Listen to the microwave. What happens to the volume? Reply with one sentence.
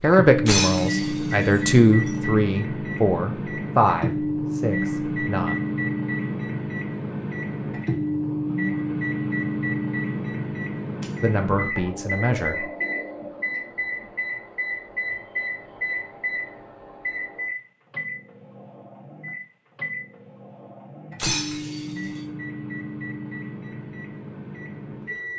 The loudness of the microwave goes down.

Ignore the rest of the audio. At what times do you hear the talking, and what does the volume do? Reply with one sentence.
The talking can be heard from 0.0 to 5.5 s, getting louder then quieter; and briefly from 11.2 to 12.7 s.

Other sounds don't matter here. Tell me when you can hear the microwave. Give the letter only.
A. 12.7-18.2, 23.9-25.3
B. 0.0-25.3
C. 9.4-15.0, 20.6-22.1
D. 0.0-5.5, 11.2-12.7
B.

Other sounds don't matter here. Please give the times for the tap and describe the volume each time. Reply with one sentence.
The tap can't be heard in this clip.